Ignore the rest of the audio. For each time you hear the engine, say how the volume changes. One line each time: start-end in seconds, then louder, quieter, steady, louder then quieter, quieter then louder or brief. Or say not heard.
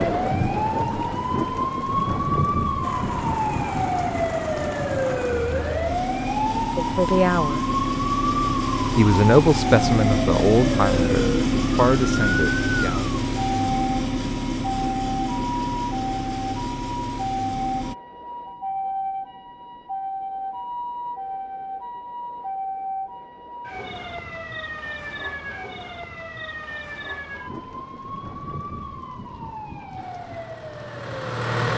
2.8-17.9 louder then quieter
29.9-31.7 brief.